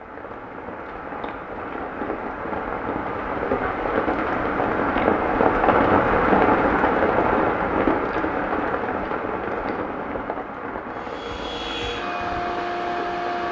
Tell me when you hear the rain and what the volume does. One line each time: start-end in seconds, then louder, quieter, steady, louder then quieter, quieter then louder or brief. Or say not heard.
0.0-13.4 louder then quieter.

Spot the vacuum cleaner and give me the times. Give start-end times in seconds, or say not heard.
10.9-13.4.